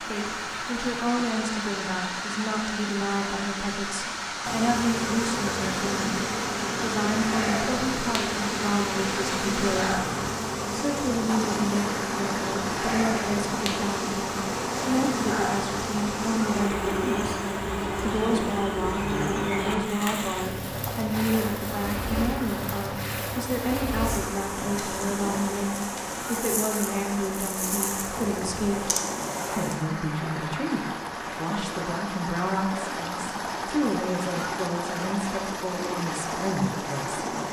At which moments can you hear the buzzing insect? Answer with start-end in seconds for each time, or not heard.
4.4-29.8.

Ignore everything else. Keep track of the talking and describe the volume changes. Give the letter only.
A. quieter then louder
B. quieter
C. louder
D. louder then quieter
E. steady
E.